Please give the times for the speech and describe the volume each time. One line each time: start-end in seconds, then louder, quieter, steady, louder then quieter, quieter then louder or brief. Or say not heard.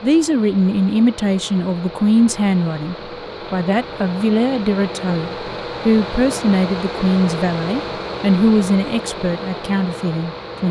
0.0-10.6 steady.